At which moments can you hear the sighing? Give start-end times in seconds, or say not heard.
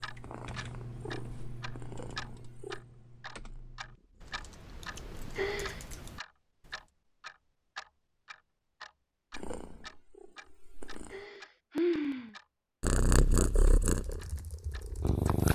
5.3-5.8, 11.1-12.3.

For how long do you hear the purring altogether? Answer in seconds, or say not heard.
10 s.